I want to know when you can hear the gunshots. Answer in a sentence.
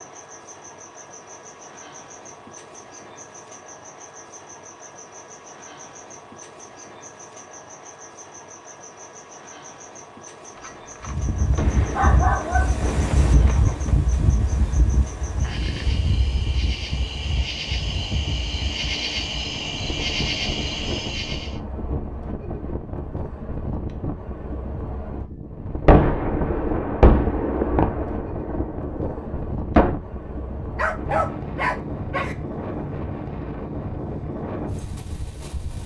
The gunshots can be heard from 10.6 to 13.9 s and from 25.9 to 29.9 s.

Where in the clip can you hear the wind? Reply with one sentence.
You can hear the wind from 11.0 to 35.8 s.